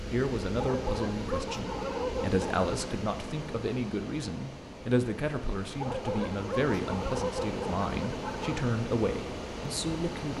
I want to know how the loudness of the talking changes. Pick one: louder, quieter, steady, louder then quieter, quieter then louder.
steady.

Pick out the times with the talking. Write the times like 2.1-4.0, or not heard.
0.1-10.3.